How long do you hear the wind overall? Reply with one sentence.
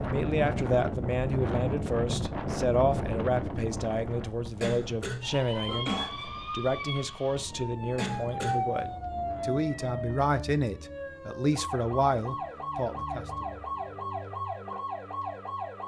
The wind can be heard for 10 seconds in total.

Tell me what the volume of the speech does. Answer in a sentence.
The loudness of the speech stays about the same.